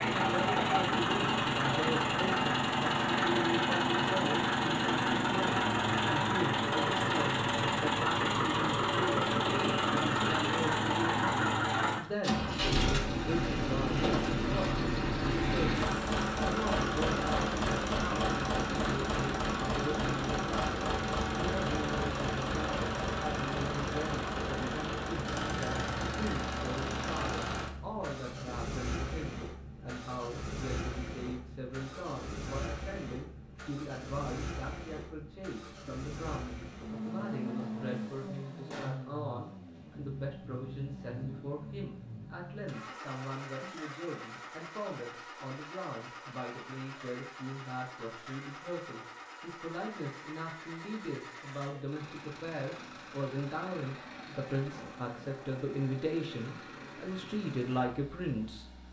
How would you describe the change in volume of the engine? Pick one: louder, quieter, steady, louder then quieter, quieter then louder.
quieter.